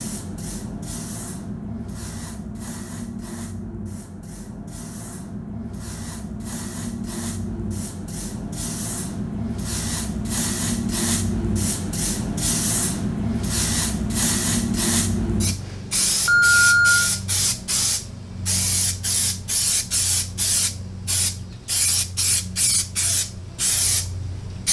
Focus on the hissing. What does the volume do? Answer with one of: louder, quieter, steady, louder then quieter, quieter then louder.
louder.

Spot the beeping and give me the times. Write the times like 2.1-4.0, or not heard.
16.2-17.1.